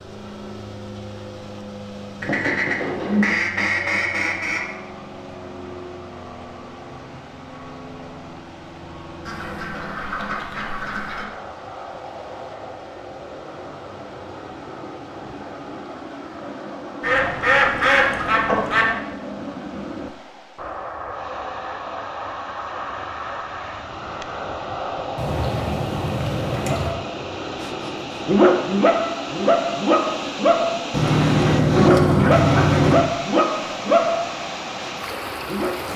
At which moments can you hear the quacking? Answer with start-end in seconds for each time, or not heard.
2.2-4.7, 9.2-11.2, 17.0-18.9, 25.1-26.9, 30.9-33.0.